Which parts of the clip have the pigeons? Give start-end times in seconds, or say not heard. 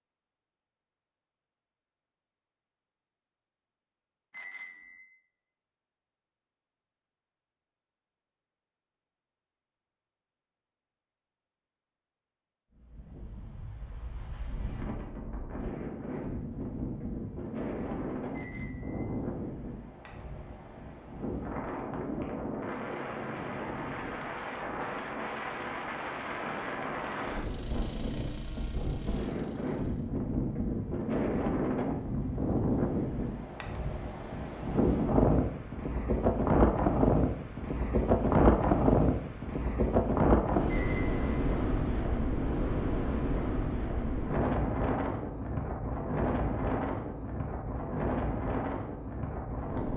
not heard.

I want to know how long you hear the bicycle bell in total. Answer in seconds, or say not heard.
2 s.